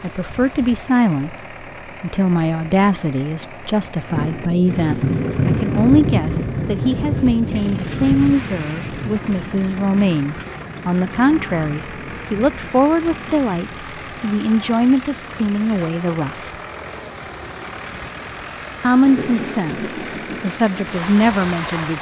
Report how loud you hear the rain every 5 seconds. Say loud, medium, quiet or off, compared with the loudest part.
medium, loud, quiet, medium, medium.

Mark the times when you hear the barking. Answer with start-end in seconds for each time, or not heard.
not heard.